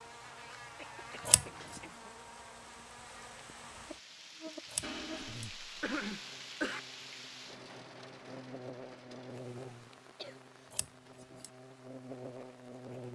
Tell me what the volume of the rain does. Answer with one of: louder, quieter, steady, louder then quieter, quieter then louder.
louder then quieter.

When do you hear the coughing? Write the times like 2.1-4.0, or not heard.
0.8-2.0, 4.8-6.8, 10.0-10.8.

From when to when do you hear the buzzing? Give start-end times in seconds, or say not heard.
0.0-13.1.